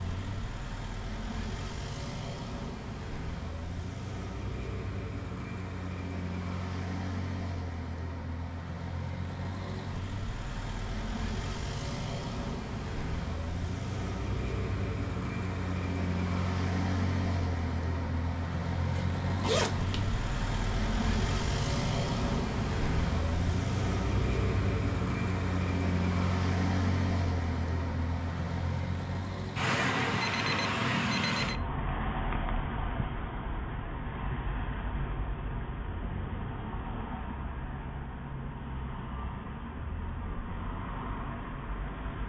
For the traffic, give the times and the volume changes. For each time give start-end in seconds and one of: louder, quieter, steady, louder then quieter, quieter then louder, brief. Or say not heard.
0.0-42.2 louder then quieter.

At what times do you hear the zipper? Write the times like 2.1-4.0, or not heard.
18.9-20.0.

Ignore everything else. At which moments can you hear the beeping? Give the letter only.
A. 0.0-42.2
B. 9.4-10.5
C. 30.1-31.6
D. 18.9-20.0
C.